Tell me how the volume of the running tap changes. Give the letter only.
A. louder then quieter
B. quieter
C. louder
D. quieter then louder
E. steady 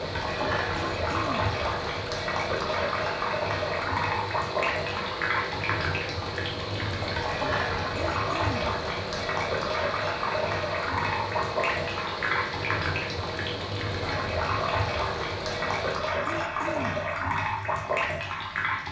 E.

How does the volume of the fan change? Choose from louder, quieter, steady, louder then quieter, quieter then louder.
steady.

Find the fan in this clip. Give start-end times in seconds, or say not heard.
0.0-16.1.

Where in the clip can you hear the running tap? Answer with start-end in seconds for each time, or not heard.
0.0-18.8.